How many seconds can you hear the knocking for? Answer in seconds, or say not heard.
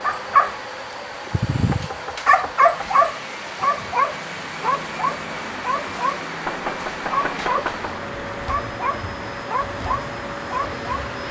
3 s.